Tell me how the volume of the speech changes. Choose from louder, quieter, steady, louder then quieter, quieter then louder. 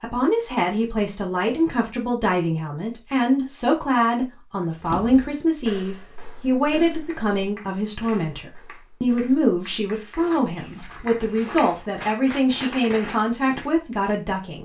steady.